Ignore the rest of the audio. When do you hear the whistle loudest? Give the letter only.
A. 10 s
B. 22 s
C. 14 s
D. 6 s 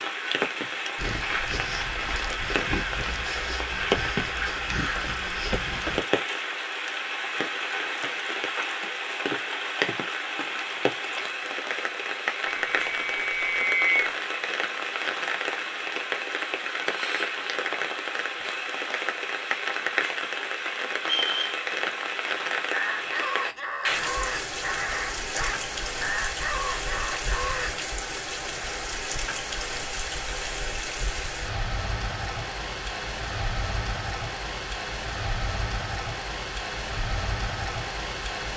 C.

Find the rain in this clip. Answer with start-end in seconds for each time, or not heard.
0.0-38.5.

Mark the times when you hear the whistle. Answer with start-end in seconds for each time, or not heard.
12.4-14.2, 21.0-21.6.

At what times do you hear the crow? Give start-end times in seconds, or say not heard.
0.9-6.0, 22.7-27.9.